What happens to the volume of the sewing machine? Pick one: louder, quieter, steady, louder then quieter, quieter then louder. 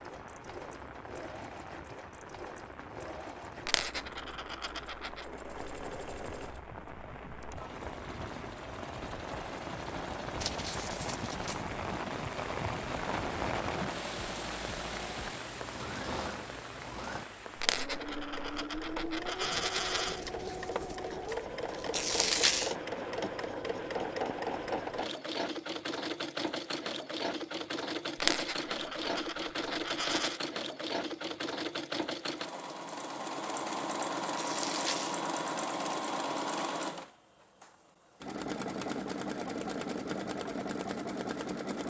louder.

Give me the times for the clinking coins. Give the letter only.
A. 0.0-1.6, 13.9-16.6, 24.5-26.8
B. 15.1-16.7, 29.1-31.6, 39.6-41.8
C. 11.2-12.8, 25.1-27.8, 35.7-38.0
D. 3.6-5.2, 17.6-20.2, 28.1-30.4
D.